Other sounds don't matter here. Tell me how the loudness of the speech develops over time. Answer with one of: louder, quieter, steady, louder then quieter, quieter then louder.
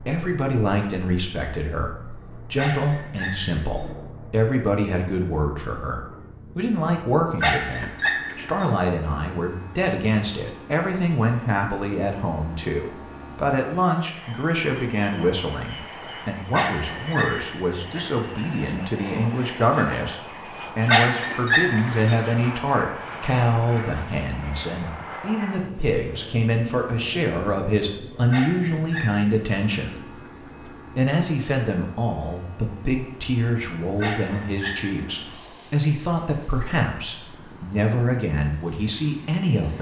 steady.